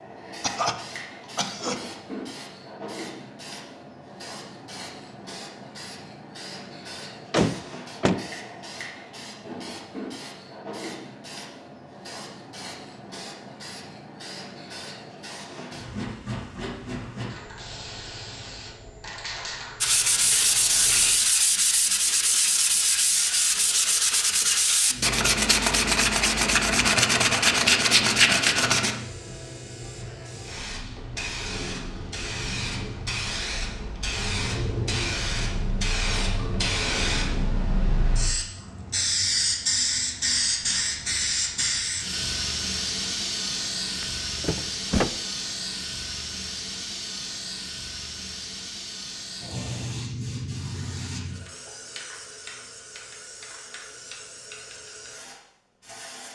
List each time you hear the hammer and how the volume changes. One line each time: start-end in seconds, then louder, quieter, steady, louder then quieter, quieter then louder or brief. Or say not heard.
not heard.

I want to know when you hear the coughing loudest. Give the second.
1 s.